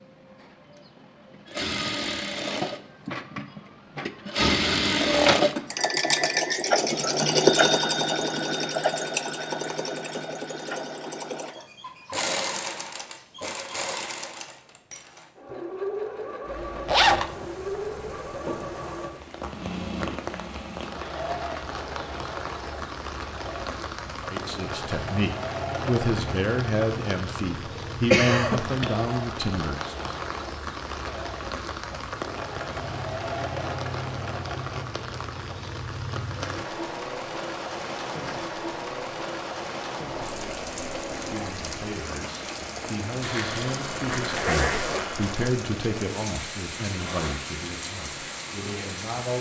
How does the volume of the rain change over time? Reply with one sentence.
The loudness of the rain stays about the same.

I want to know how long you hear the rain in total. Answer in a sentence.
The rain can be heard for 33 seconds in total.